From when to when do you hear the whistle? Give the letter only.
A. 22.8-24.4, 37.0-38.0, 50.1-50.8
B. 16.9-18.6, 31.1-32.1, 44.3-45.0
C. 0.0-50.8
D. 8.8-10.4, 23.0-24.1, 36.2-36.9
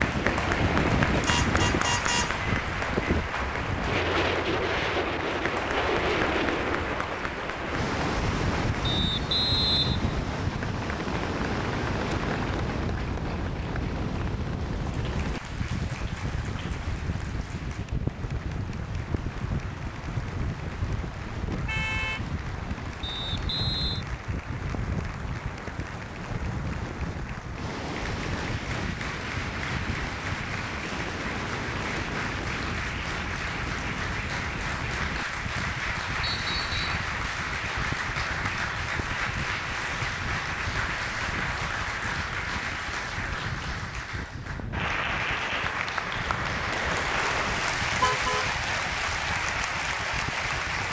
D.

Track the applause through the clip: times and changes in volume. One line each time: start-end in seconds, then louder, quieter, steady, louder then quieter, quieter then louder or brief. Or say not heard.
0.0-50.8 quieter then louder.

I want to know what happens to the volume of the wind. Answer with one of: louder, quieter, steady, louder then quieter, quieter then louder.
quieter.